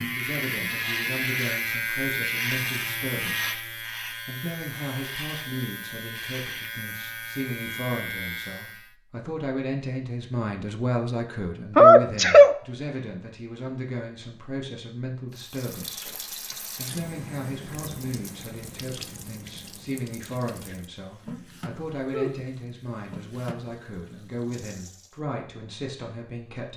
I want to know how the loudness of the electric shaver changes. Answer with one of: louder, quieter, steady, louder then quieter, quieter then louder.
quieter.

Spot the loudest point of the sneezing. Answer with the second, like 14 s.
12 s.